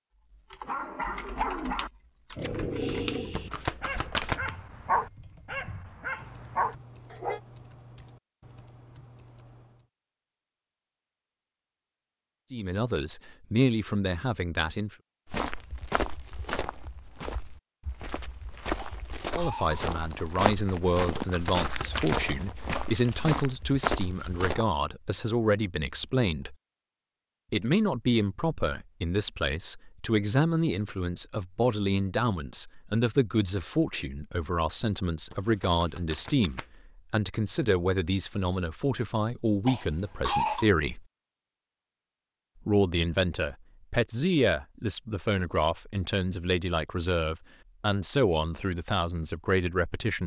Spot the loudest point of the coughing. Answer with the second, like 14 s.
40 s.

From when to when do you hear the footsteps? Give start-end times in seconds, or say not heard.
15.2-24.6.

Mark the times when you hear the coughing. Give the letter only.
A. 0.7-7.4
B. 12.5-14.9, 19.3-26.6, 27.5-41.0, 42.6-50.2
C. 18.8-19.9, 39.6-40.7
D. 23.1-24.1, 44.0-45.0
C.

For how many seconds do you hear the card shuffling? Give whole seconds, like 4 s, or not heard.
4 s.